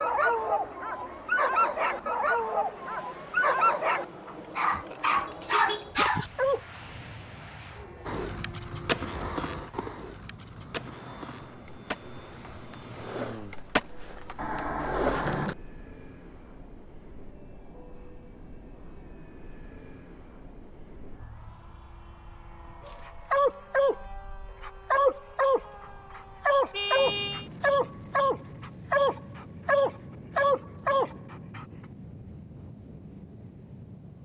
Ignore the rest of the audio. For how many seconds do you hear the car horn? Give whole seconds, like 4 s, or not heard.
3 s.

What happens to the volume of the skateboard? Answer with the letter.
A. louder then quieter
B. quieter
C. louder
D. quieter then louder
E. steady
D.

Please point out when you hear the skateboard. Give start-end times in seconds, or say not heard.
8.1-15.6.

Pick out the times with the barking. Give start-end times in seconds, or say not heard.
0.0-6.6, 22.9-24.0, 24.6-31.6.